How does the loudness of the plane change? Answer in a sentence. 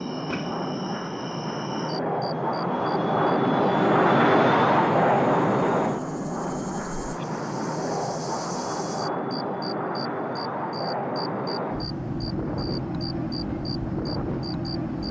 The volume of the plane goes up, then down.